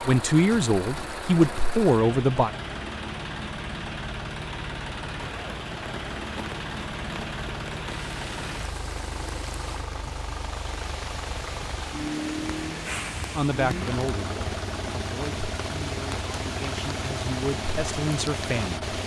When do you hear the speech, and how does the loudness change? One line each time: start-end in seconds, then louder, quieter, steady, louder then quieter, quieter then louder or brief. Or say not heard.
0.0-2.5 brief
13.3-18.9 quieter then louder.